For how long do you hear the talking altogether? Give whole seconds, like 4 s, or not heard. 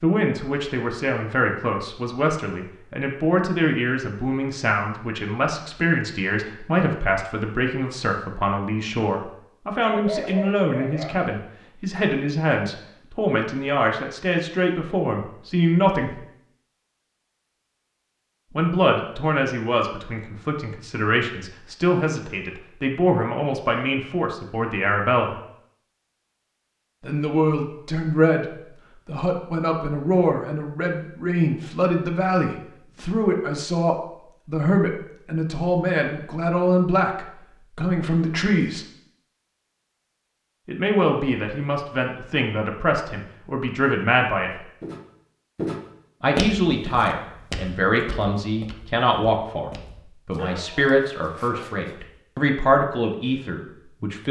47 s.